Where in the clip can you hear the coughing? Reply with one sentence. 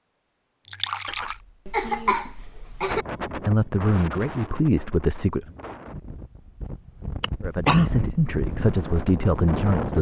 You can hear the coughing from 1.1 to 3.0 s and from 7.2 to 7.8 s.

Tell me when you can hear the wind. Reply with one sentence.
You can hear the wind from 2.9 to 9.9 s.